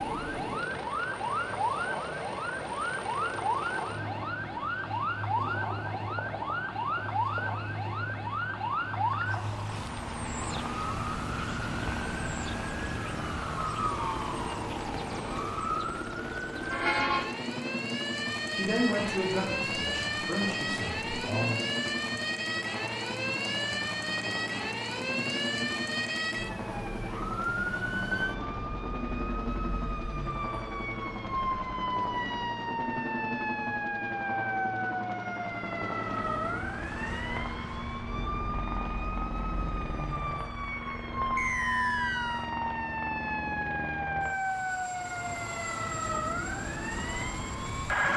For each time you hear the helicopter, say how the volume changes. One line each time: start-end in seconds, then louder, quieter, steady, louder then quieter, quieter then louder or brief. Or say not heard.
0.0-48.1 steady.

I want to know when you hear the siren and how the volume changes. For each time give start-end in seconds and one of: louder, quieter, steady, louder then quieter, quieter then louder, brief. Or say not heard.
0.0-48.1 steady.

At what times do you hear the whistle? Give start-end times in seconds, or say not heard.
41.4-42.5.